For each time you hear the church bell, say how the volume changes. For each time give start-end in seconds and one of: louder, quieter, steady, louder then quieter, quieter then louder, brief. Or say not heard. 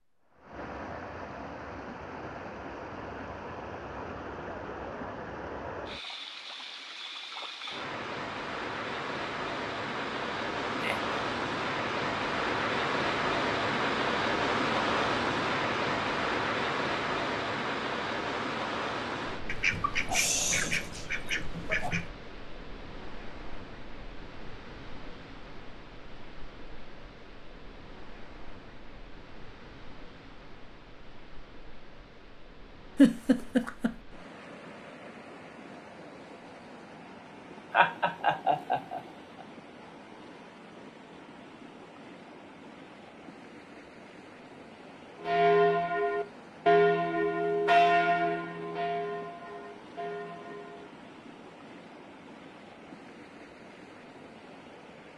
45.2-51.0 quieter.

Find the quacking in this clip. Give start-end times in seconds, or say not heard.
19.4-22.1.